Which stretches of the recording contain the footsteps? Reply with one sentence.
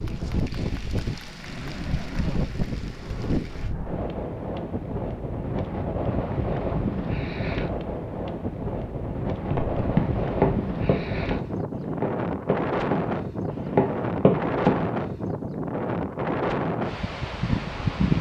You can hear the footsteps from 9.5 to 14.9 s.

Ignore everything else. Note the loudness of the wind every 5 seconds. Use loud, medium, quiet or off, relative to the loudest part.
medium, loud, loud, loud.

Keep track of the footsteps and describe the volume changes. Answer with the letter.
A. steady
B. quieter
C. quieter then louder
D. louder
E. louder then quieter
C.